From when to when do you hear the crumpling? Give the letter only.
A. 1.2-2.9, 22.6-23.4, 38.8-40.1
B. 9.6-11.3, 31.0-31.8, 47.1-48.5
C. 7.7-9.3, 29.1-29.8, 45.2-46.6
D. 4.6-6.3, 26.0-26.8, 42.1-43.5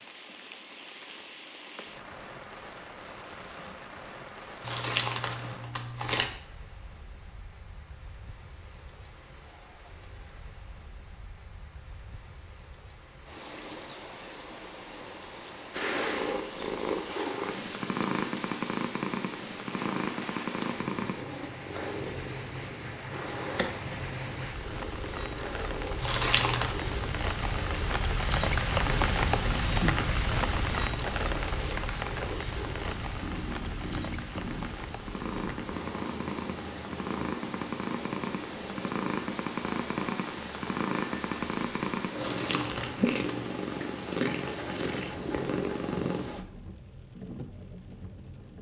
D.